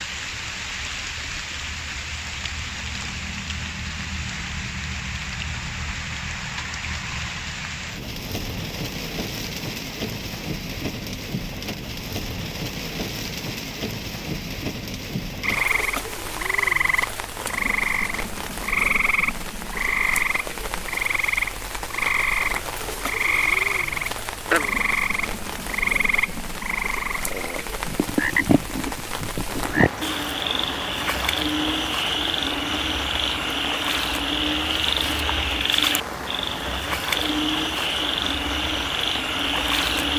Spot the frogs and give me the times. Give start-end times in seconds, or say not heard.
15.4-40.1.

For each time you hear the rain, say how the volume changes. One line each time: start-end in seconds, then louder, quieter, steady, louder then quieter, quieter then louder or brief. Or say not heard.
0.0-40.1 steady.